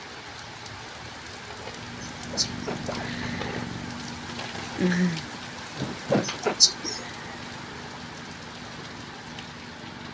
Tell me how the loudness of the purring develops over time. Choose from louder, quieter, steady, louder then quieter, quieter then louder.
louder then quieter.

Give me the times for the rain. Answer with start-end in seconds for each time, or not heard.
0.0-10.0.